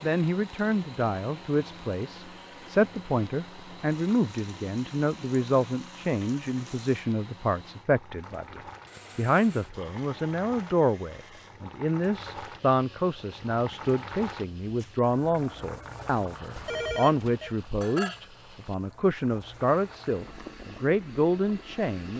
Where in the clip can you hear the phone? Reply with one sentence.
The phone can be heard from 16.6 to 17.6 s.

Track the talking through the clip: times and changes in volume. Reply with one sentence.
You can hear the talking from 0.0 to 22.1 s, at a steady volume.